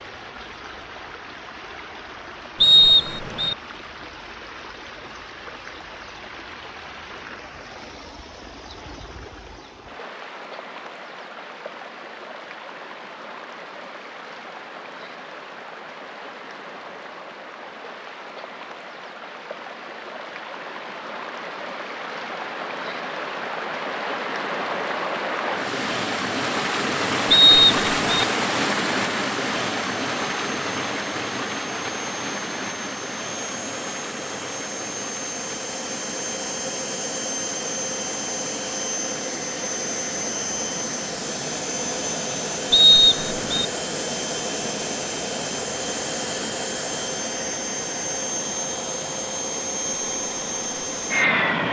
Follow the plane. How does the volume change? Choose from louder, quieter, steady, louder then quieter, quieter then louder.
louder.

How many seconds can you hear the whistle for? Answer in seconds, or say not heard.
3 s.